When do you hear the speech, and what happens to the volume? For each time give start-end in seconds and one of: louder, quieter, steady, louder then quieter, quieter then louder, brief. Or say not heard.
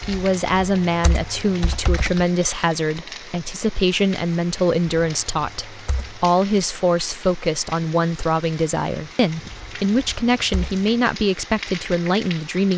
0.0-12.7 steady.